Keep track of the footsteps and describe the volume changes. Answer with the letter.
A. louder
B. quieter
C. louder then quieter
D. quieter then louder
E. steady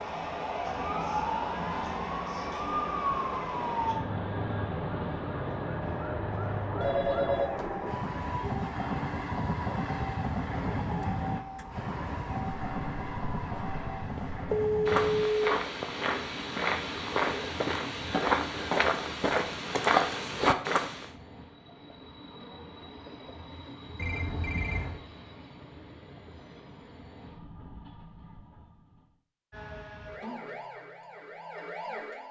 A.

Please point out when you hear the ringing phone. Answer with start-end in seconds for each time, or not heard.
6.8-7.7, 14.5-15.7, 23.9-25.0.